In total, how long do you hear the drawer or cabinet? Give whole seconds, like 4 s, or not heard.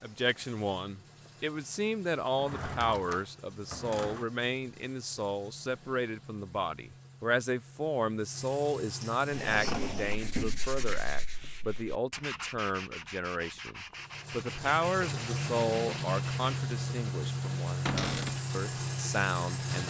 4 s.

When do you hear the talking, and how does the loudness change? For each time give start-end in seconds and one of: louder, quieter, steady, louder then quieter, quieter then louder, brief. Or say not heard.
0.0-19.8 steady.